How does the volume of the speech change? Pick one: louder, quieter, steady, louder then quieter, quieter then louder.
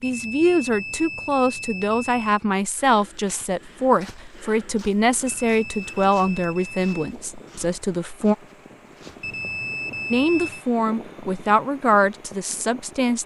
steady.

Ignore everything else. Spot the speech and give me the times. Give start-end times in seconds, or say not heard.
0.0-8.3, 10.1-13.2.